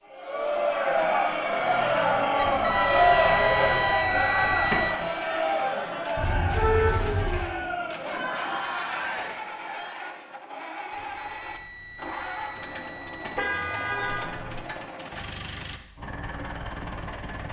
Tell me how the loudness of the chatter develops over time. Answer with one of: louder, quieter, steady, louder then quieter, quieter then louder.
quieter.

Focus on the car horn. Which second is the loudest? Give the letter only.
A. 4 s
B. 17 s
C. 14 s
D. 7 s
D.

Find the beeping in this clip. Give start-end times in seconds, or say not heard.
2.4-5.0, 10.9-13.4.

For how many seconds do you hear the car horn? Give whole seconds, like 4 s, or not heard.
4 s.